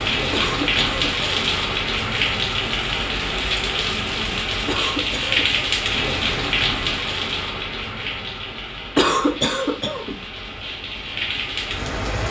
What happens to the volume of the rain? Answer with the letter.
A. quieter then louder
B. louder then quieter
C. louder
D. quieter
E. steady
D.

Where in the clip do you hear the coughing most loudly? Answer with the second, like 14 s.
9 s.